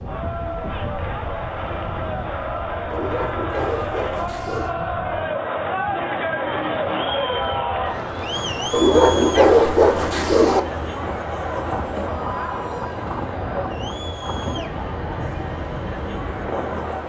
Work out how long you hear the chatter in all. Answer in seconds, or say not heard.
17 s.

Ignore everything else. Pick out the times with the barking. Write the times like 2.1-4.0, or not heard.
2.9-4.8, 8.7-10.6.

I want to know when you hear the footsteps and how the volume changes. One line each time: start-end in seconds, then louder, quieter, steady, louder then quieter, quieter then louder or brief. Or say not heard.
not heard.